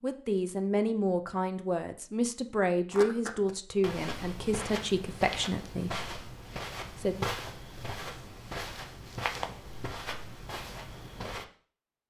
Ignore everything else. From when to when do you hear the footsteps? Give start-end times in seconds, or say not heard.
2.9-11.4.